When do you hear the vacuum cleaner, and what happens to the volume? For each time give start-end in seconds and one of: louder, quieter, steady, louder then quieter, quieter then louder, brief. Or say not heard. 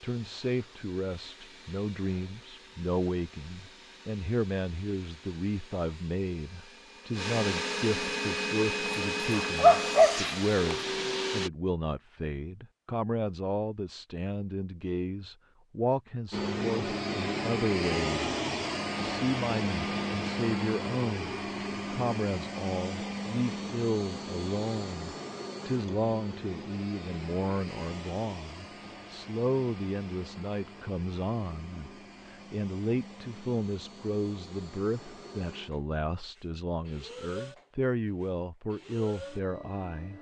0.0-11.5 louder
16.3-40.1 quieter.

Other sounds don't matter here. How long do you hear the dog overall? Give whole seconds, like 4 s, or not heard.
2 s.